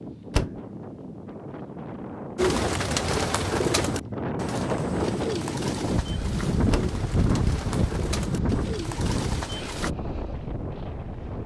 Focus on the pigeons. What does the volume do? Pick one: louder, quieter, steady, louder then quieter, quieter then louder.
quieter.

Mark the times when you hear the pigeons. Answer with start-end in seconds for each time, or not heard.
2.4-9.9.